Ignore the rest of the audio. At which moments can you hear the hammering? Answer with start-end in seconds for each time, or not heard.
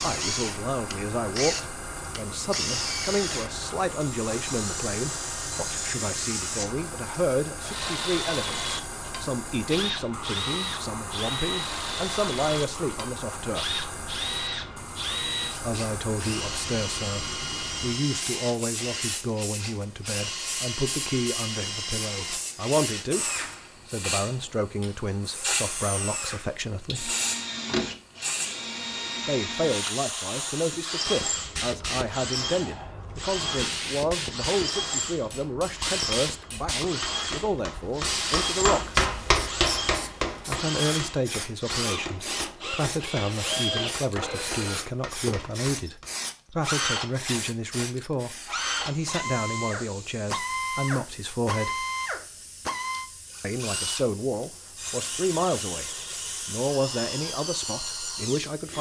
35.1-46.1.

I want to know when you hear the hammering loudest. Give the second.
39 s.